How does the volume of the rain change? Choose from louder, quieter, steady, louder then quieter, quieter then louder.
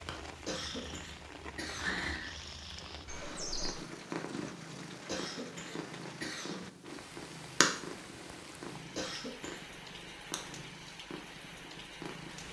steady.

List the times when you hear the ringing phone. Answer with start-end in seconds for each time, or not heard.
3.0-3.8.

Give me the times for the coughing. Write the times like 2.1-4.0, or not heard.
0.5-2.0, 5.0-6.7, 8.9-9.6.